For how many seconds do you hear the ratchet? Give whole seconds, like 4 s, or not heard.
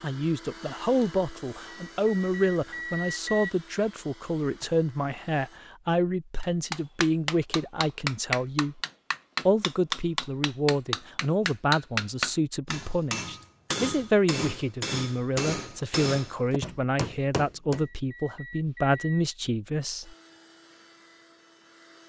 not heard.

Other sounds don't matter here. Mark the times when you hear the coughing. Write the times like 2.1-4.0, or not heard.
not heard.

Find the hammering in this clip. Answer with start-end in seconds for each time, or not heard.
6.4-17.9.